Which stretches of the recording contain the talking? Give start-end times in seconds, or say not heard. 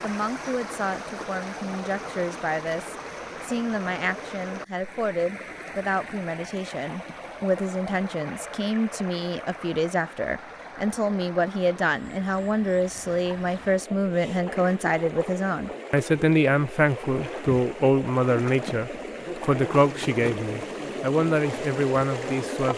0.0-22.7.